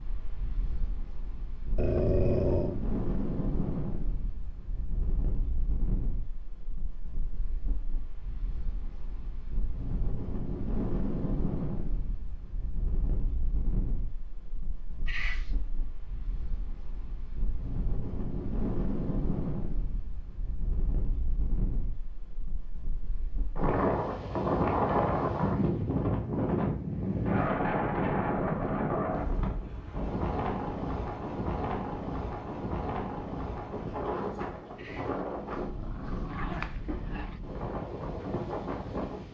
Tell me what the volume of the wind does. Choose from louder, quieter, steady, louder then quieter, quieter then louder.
louder then quieter.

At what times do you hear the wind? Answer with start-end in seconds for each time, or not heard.
0.0-39.2.